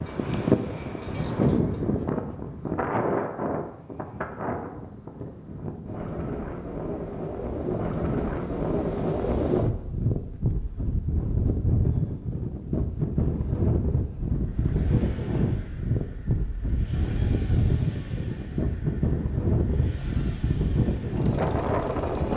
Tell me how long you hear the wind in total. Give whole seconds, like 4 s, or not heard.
22 s.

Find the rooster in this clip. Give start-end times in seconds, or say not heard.
not heard.